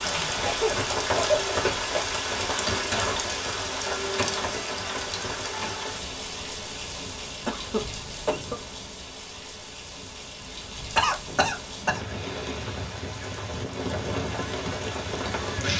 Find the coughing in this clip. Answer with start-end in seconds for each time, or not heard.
0.5-2.2, 7.5-8.6, 10.9-12.0.